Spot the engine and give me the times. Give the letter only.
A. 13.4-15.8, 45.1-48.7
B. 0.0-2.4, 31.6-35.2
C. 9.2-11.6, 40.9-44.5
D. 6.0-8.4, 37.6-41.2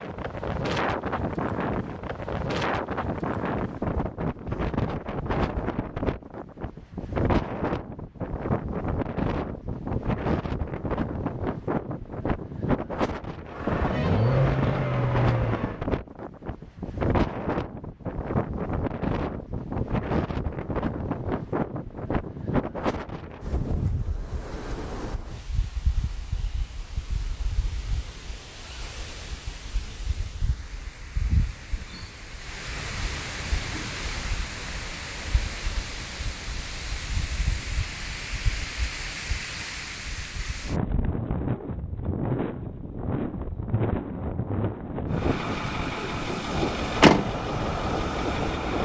A.